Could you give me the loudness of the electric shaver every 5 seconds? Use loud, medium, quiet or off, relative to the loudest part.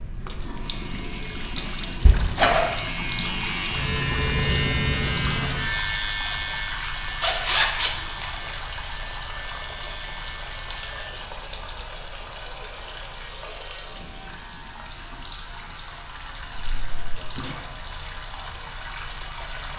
loud, loud, quiet, quiet.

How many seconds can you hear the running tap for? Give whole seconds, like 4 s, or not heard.
20 s.